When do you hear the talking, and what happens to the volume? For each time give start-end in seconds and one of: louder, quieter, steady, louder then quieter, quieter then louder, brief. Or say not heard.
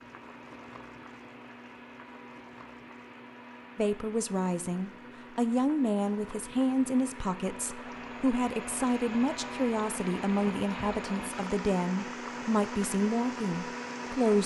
3.8-14.4 steady.